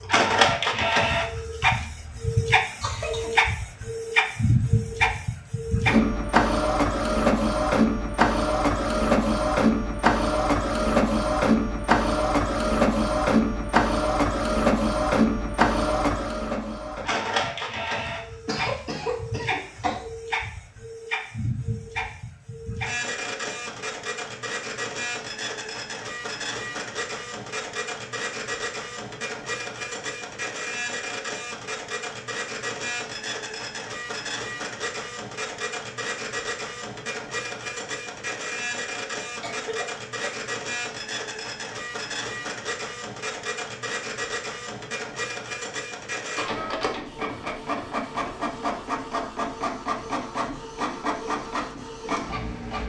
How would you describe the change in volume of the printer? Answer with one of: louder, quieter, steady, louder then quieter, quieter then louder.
quieter.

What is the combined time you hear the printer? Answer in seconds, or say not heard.
53 s.